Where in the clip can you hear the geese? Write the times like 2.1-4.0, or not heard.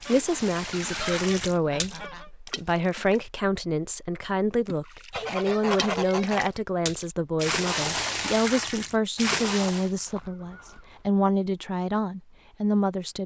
0.1-2.3, 5.1-6.5, 9.8-11.1.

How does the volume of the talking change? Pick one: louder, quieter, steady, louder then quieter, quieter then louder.
steady.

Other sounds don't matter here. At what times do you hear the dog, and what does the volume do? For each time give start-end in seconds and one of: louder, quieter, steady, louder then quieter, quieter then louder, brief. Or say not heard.
not heard.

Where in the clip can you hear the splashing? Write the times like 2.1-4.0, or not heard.
0.0-3.2, 4.7-9.9.